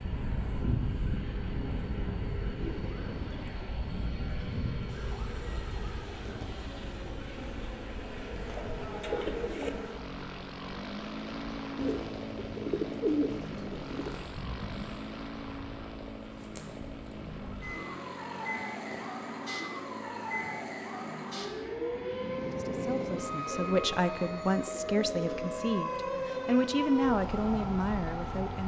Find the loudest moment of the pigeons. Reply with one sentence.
The loudest moment of the pigeons is at 13 seconds.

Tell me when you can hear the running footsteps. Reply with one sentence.
You can't hear the running footsteps here.